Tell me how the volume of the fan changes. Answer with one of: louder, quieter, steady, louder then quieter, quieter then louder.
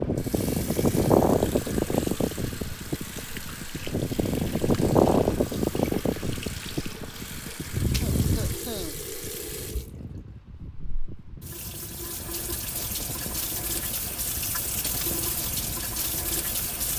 quieter.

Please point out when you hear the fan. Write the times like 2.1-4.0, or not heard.
0.0-16.9.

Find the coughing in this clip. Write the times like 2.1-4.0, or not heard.
8.0-8.9.